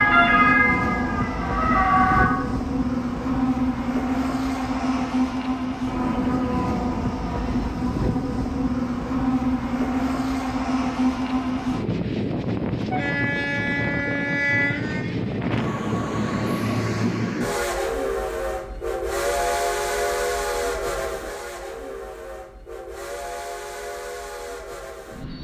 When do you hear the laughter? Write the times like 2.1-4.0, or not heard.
not heard.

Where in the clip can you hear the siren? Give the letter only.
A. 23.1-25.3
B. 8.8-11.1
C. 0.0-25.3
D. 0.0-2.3
D.